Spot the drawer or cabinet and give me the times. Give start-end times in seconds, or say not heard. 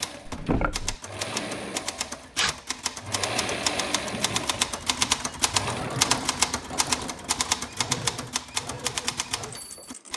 0.2-0.9.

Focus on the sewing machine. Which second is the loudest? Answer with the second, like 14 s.
4 s.